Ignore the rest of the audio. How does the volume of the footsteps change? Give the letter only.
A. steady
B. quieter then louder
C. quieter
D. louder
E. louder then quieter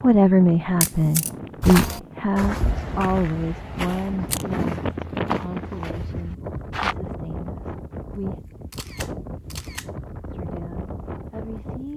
C.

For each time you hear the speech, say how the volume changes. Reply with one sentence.
You can hear the speech from 0.0 to 8.4 s, getting quieter; and briefly from 10.3 to 11.9 s.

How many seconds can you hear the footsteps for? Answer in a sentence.
You can hear the footsteps for 5 seconds altogether.